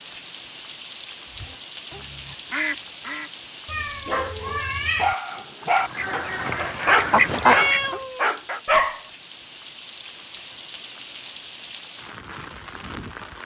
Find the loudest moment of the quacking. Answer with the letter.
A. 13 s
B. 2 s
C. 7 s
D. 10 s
C.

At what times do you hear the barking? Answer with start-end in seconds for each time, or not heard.
4.4-8.6.